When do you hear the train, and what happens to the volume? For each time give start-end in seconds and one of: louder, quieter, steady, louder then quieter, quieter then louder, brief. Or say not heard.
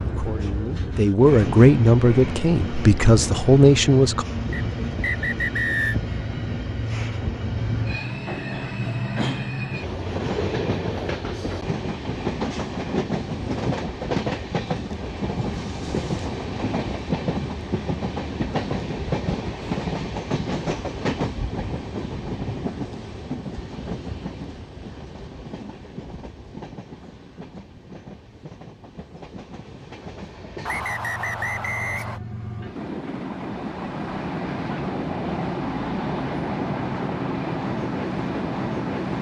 0.0-39.1 quieter then louder.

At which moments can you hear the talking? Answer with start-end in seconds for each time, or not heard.
0.1-4.2.